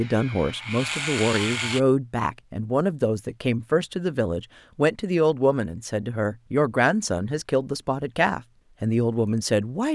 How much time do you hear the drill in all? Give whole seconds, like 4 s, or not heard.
2 s.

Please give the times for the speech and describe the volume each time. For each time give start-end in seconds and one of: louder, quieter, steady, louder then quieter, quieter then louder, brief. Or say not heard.
0.0-9.9 steady.